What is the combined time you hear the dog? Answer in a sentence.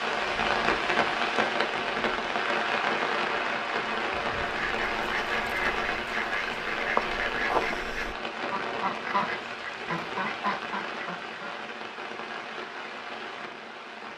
You can't hear the dog here.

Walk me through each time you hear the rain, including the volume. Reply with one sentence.
You can hear the rain from 0.0 to 14.1 s, getting quieter.